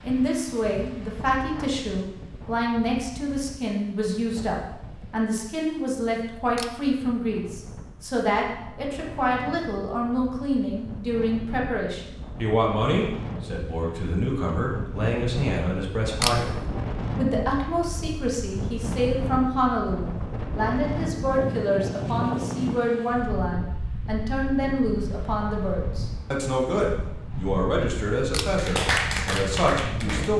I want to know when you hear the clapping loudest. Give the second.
29 s.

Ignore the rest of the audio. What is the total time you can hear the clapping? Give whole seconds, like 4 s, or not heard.
2 s.